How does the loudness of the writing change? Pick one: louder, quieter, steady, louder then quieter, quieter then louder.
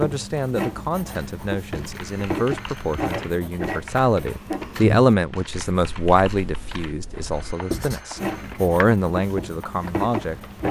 steady.